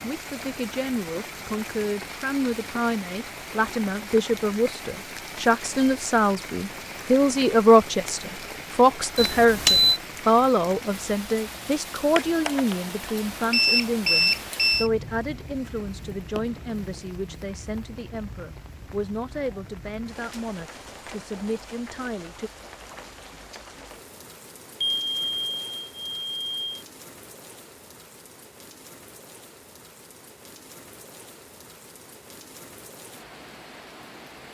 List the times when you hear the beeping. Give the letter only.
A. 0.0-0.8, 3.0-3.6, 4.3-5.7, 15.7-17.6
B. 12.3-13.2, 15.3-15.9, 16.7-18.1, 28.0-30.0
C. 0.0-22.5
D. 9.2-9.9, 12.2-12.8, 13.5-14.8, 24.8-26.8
D.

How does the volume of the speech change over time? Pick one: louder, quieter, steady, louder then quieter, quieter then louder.
louder then quieter.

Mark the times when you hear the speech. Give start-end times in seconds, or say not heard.
0.0-22.5.